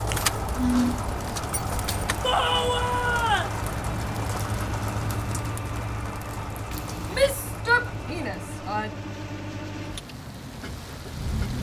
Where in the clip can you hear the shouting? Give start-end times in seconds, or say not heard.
2.2-3.5, 7.1-8.9.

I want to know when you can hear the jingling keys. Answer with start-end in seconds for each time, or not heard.
0.1-2.2, 6.7-7.3.